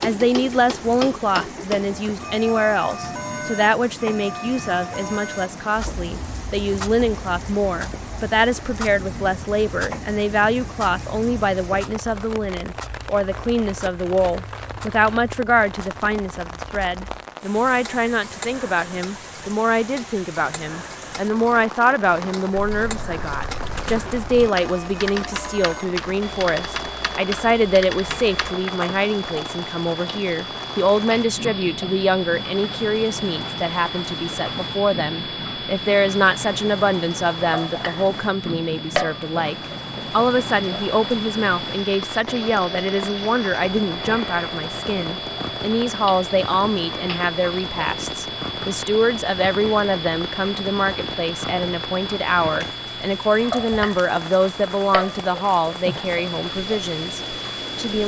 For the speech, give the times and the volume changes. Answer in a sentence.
You can hear the speech from 0.0 to 58.0 s, at a steady volume.